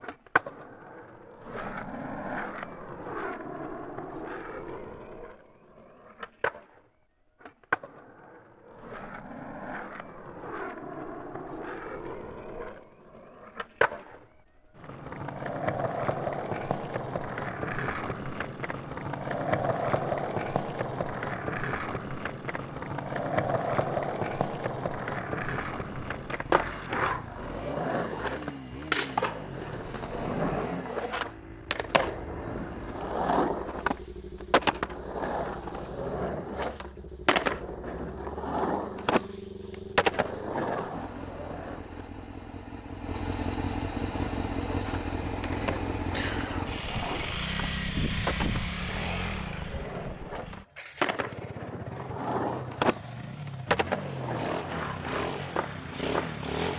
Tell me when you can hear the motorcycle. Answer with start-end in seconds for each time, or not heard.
25.4-56.7.